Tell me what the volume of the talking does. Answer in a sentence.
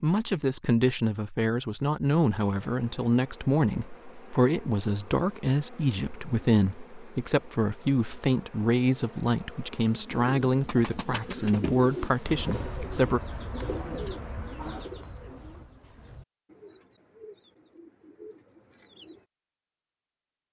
The volume of the talking stays about the same.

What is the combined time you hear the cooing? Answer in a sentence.
You can hear the cooing for 9 seconds altogether.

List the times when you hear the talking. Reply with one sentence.
You can hear the talking from 0.0 to 13.2 s.